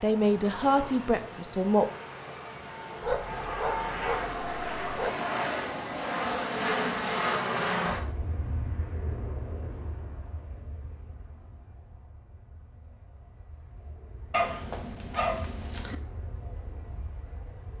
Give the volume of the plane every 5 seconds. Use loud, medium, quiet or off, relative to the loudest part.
medium, loud, quiet, quiet.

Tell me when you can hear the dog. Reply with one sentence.
You can hear the dog from 3.0 to 5.1 s and from 14.3 to 15.9 s.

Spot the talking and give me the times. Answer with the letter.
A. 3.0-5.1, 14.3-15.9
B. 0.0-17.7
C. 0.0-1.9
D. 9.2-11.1
C.